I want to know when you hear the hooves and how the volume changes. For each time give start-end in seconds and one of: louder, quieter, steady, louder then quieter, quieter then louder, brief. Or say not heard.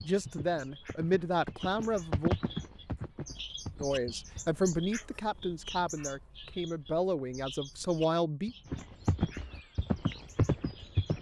0.0-4.5 louder then quieter
8.7-11.1 brief.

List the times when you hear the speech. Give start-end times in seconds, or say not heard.
0.0-2.4, 3.8-8.6.